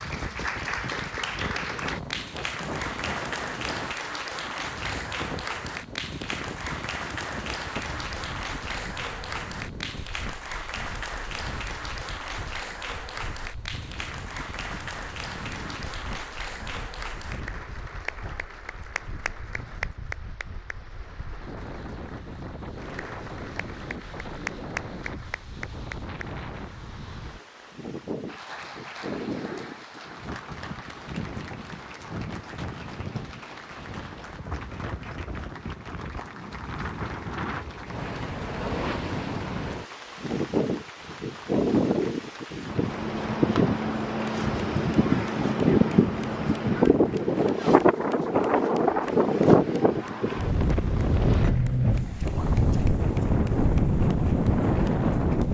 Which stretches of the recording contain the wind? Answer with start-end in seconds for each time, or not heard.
0.0-55.4.